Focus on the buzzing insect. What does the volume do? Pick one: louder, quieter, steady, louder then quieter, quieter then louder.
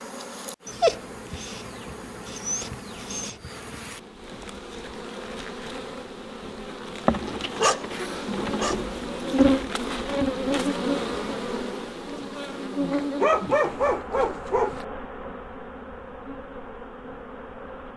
louder then quieter.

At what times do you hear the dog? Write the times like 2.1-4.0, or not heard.
0.7-3.5, 7.5-8.8, 12.9-14.8.